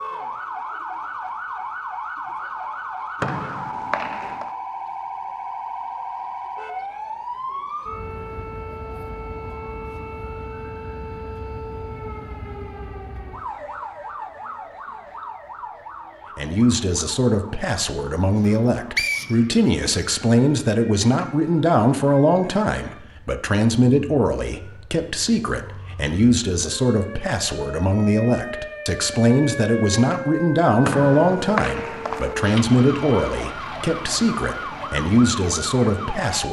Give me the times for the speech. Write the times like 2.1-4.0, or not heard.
16.4-36.4.